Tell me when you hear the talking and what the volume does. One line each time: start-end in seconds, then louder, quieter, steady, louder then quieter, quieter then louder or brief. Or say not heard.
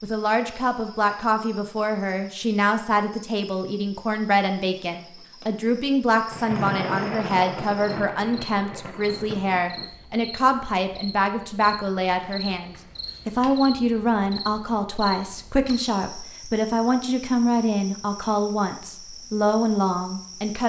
0.0-20.6 steady.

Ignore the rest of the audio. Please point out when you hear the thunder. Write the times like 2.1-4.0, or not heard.
6.3-9.9.